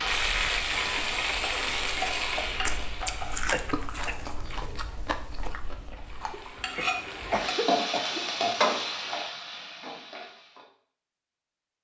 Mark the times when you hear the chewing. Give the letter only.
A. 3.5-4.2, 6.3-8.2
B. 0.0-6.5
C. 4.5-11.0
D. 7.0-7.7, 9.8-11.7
B.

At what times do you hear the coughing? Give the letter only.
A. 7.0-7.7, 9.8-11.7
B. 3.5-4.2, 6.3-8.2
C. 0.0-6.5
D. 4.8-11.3
B.